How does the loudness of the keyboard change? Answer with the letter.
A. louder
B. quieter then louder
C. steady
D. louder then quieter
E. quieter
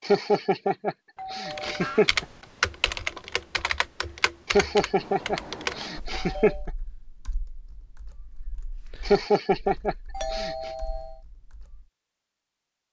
E.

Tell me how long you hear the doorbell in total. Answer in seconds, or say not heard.
4 s.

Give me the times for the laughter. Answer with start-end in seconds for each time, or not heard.
0.0-2.2, 4.5-6.7, 9.1-10.7.